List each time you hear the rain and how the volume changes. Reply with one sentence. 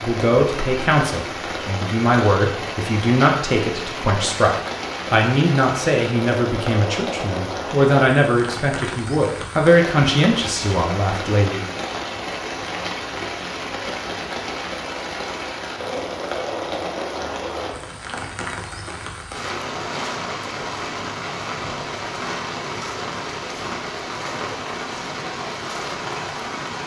You can hear the rain from 0.0 to 26.8 s, at a steady volume.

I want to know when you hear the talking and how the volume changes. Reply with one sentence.
The talking can be heard from 0.0 to 11.7 s, at a steady volume.